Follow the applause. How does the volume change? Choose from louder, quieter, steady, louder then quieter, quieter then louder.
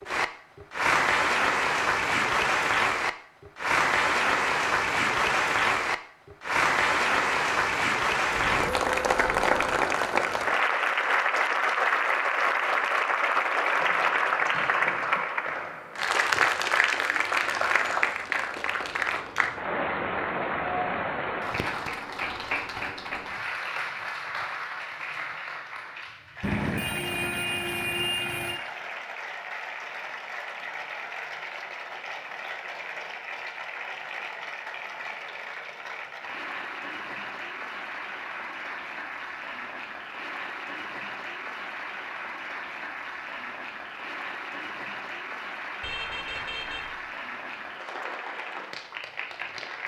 quieter.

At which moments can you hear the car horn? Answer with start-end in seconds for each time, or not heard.
8.2-9.8, 26.4-28.6, 45.8-47.0.